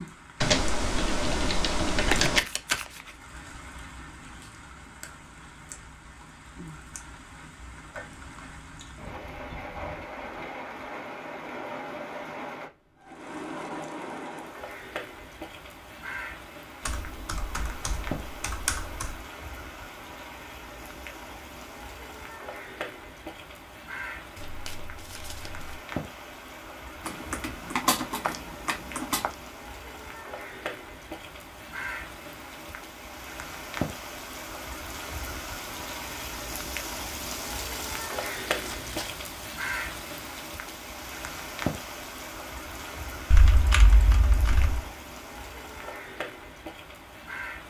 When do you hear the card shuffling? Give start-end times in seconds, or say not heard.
2.1-3.1, 24.4-25.8, 38.5-39.1.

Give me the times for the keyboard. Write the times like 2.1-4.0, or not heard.
0.4-2.4, 16.9-19.1, 27.1-29.3, 43.3-44.9.